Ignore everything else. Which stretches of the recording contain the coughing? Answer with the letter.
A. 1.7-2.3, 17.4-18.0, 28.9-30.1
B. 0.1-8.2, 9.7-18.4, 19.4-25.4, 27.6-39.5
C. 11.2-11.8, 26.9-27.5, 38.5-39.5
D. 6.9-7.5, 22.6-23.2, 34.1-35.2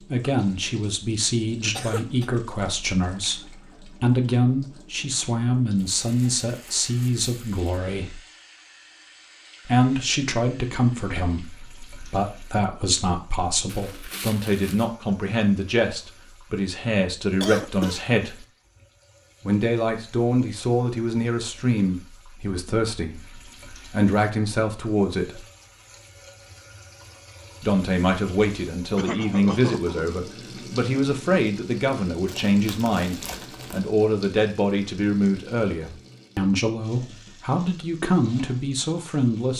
A.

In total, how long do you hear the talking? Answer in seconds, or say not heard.
35 s.